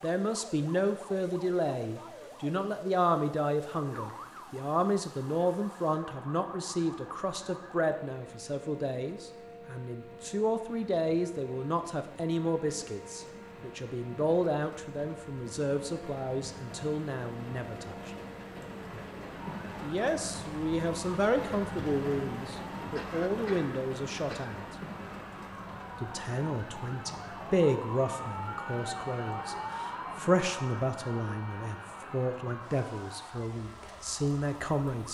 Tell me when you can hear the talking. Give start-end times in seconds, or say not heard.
0.0-18.1, 19.8-24.6, 26.0-35.0.